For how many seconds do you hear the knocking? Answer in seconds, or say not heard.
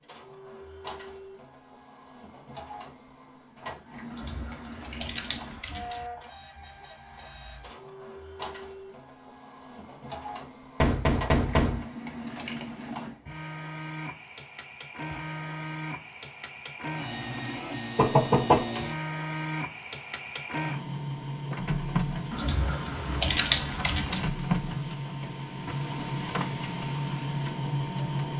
2 s.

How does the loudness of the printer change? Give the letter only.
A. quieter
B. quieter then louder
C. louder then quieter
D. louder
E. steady
D.